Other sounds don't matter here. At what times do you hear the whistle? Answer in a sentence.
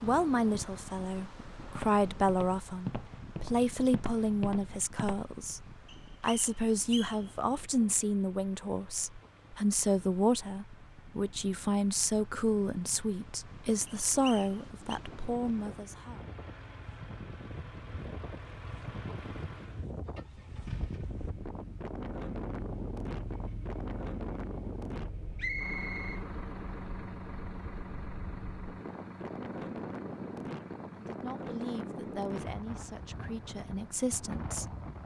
You can hear the whistle from 5.8 to 7.3 s, from 13.8 to 15.0 s and from 25.4 to 26.2 s.